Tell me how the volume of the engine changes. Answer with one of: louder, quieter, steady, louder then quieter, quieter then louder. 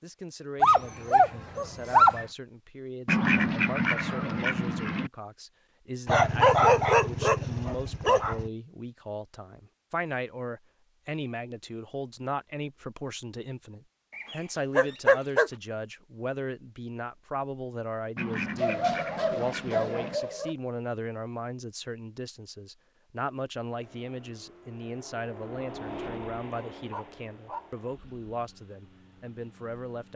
louder then quieter.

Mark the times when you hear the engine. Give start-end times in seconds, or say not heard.
23.6-30.1.